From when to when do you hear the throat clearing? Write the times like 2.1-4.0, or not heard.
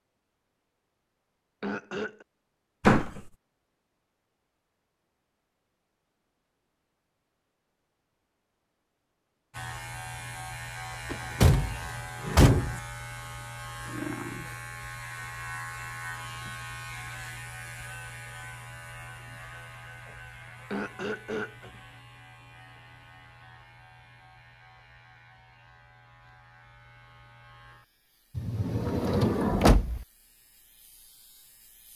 1.6-2.2, 20.7-21.7.